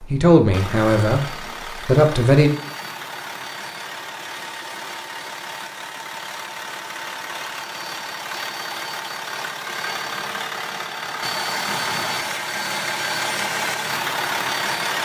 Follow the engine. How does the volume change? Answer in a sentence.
The loudness of the engine goes up.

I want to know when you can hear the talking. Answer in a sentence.
You can hear the talking from 0.0 to 1.2 s and from 1.9 to 2.5 s.